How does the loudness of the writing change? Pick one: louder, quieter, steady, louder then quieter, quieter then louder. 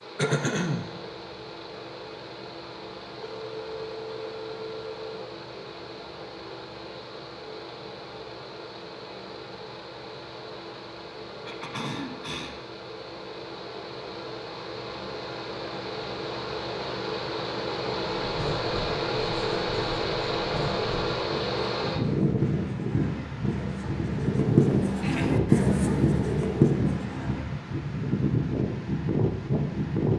louder.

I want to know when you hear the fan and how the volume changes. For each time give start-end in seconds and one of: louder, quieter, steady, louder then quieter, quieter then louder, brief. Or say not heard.
0.0-30.1 louder.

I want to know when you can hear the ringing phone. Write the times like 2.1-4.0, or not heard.
3.2-5.2.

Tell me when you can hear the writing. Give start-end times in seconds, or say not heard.
18.2-27.4.